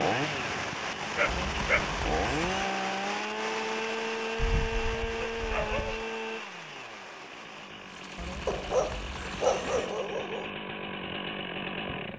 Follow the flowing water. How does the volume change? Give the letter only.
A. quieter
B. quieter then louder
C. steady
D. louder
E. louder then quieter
A.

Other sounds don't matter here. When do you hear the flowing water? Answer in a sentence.
You can hear the flowing water from 0.0 to 10.2 s.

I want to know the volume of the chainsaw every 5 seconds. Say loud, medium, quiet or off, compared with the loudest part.
loud, medium, loud.